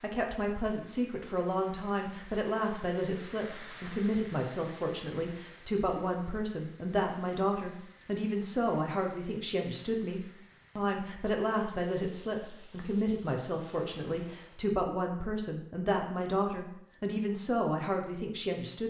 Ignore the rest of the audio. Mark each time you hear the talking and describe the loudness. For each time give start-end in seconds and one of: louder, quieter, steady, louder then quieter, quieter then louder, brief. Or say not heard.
0.0-18.8 steady.